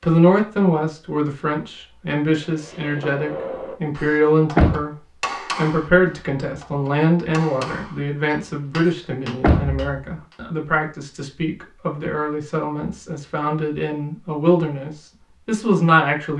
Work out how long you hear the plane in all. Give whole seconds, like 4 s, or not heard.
not heard.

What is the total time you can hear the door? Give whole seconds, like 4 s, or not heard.
2 s.